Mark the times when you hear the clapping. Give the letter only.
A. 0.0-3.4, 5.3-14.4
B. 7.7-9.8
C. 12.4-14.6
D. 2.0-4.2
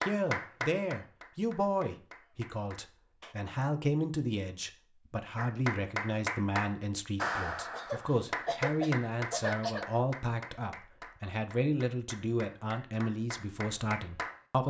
A.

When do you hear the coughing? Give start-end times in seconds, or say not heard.
7.7-9.8.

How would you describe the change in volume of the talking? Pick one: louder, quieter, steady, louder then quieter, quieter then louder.
steady.